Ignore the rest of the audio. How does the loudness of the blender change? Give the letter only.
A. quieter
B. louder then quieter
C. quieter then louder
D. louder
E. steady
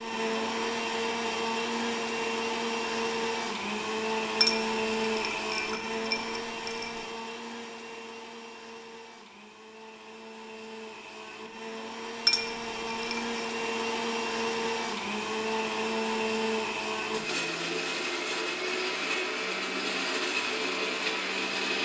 C.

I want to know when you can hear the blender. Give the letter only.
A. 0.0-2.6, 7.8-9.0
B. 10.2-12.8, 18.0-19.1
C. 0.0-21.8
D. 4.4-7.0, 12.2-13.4
C.